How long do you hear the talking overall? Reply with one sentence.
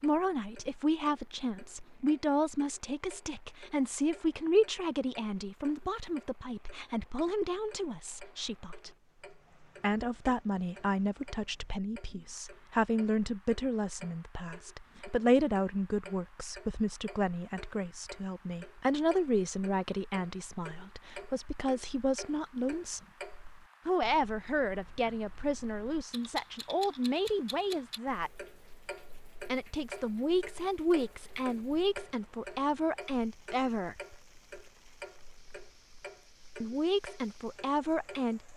You can hear the talking for 33 seconds altogether.